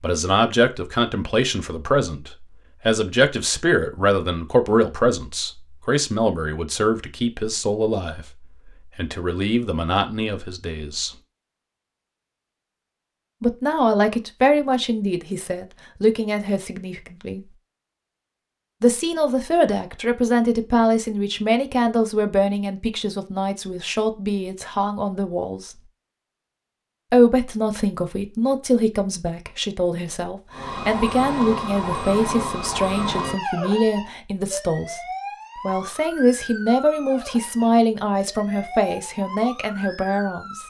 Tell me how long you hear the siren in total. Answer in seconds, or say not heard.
10 s.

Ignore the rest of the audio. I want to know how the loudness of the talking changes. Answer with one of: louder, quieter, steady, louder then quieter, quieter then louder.
steady.